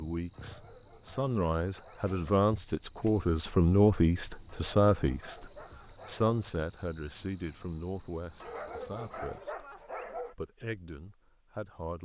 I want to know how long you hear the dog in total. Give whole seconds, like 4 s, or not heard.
6 s.